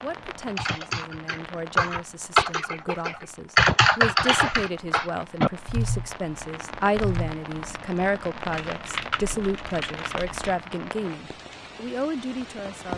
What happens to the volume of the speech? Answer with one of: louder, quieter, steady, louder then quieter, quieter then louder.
louder.